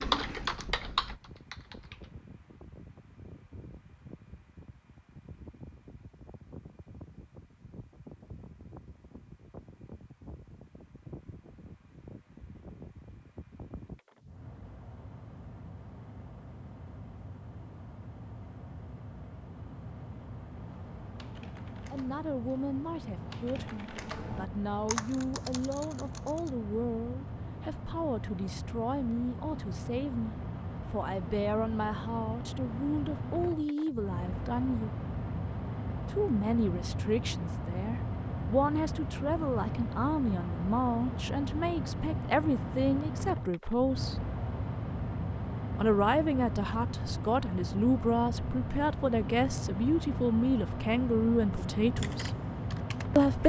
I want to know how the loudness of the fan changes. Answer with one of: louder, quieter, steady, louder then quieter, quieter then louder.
louder.